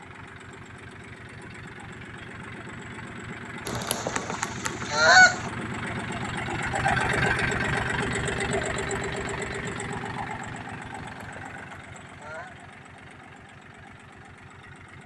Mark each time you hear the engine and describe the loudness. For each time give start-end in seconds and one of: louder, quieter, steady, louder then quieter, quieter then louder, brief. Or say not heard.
0.0-15.0 louder then quieter.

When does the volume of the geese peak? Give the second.
5 s.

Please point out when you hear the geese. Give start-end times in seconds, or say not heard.
3.6-5.5, 10.9-12.5.